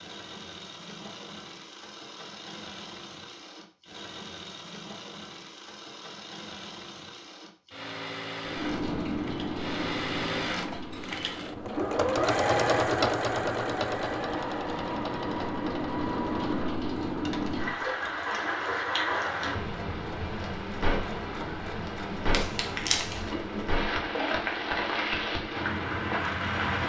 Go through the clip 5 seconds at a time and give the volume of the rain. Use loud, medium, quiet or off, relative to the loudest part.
off, loud, medium, loud, loud, loud.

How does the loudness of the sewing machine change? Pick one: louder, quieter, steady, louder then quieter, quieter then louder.
louder then quieter.